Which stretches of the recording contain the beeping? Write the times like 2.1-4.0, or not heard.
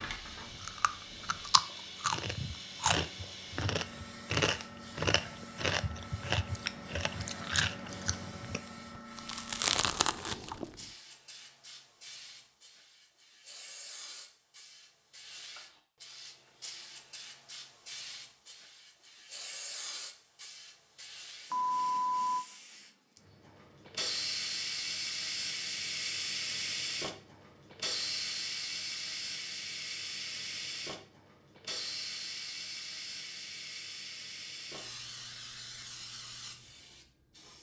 21.5-22.4.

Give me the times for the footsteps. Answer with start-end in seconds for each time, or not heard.
not heard.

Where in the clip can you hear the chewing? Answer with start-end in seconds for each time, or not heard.
0.5-10.8.